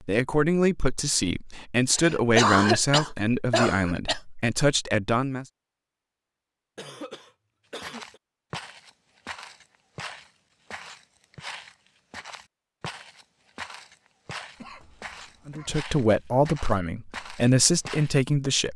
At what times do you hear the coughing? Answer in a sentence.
You can hear the coughing from 1.9 to 4.2 s, from 6.8 to 8.2 s and from 14.6 to 15.8 s.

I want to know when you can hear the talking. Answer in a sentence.
You can hear the talking from 0.1 to 5.5 s and from 15.4 to 18.7 s.